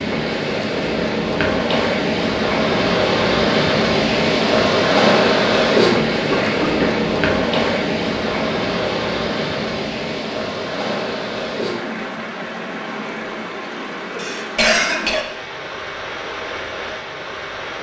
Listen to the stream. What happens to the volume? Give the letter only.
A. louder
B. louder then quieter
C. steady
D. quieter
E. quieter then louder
D.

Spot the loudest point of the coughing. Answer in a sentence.
The volume of the coughing peaks at 15 seconds.